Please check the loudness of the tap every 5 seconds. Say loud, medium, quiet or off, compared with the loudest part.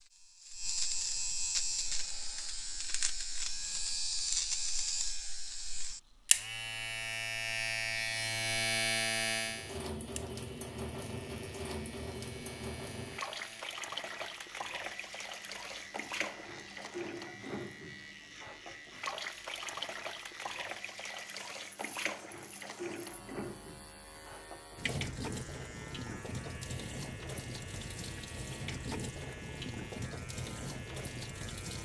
quiet, medium, loud, loud, loud, loud, loud.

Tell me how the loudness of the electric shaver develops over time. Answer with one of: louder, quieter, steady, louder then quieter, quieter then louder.
quieter.